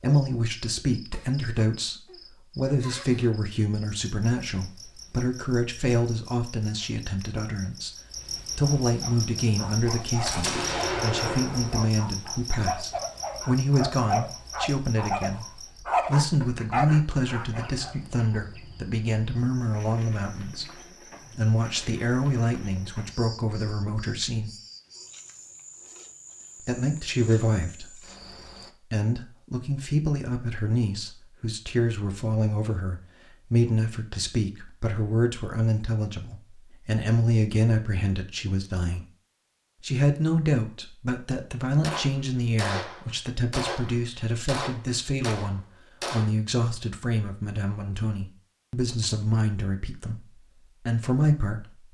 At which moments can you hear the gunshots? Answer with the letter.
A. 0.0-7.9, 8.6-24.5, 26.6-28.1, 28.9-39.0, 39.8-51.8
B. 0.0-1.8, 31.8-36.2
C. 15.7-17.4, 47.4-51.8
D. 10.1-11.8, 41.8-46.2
D.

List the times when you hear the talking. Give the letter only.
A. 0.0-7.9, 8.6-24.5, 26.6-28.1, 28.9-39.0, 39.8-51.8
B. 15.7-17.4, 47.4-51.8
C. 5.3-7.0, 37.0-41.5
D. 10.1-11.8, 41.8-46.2
A.